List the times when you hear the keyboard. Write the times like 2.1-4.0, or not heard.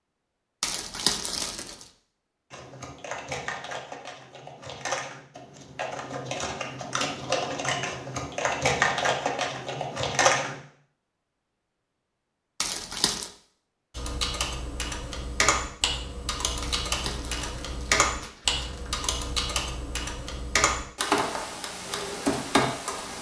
2.5-10.6, 13.9-23.1.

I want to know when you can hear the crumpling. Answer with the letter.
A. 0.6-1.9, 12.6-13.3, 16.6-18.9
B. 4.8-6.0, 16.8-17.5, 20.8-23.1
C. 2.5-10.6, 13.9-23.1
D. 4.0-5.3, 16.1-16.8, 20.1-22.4
A.